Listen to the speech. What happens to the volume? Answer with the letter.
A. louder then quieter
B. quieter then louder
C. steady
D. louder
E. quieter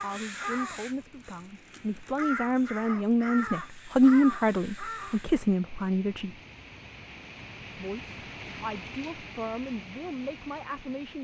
A.